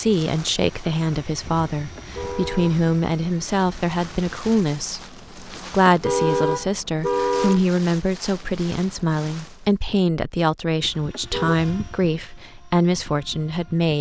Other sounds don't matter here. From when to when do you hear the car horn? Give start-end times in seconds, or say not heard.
1.8-2.8, 5.5-7.6, 10.9-11.6.